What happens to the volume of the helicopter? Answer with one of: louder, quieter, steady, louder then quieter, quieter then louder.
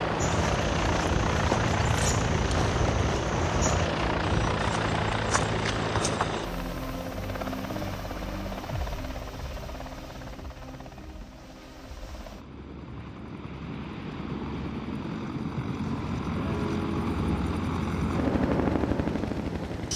quieter then louder.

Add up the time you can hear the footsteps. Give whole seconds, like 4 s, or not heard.
6 s.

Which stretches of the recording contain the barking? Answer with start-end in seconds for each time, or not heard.
not heard.